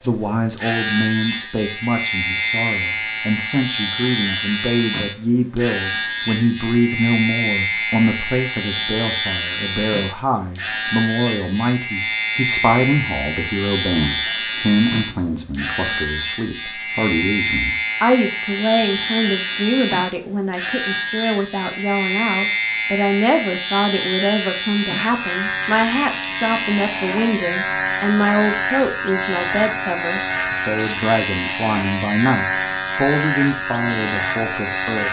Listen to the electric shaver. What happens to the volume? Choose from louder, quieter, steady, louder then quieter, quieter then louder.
steady.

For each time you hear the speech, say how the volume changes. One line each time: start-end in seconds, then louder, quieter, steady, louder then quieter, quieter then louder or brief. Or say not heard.
0.0-35.0 steady.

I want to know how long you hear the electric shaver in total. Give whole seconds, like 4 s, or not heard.
35 s.